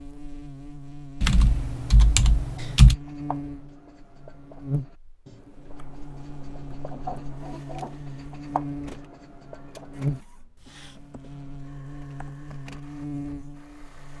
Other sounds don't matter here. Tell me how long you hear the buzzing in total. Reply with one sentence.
The buzzing can be heard for 14 seconds in total.